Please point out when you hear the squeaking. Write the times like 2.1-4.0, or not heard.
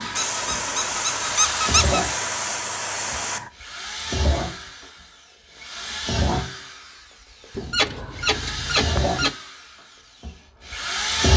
0.1-2.0, 7.5-9.3.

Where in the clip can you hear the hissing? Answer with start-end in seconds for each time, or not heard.
0.0-3.5.